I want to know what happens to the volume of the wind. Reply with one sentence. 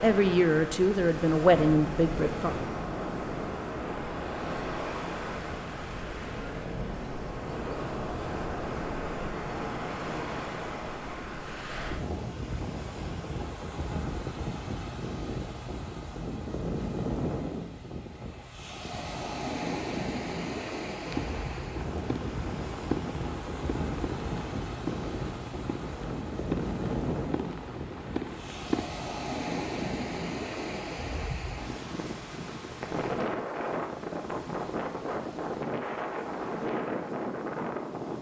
The loudness of the wind stays about the same.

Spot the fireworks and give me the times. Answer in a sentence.
You can hear the fireworks from 21.1 to 28.9 s.